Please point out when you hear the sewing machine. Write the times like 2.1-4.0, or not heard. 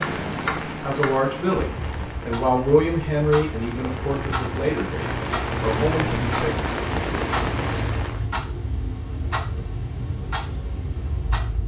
not heard.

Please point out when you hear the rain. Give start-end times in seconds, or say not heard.
0.0-8.3.